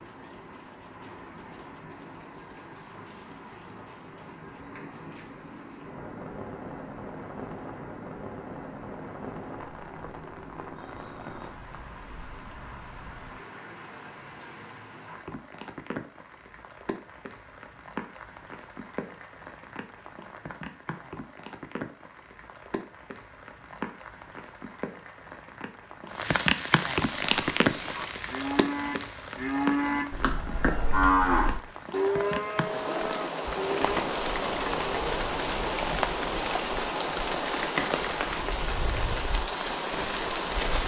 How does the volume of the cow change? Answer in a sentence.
The loudness of the cow goes up, then down.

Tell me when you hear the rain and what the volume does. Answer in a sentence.
The rain can be heard from 0.0 to 40.8 s, getting louder.